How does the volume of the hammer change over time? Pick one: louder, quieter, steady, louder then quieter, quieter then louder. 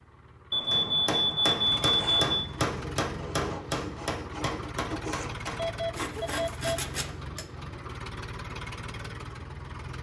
quieter.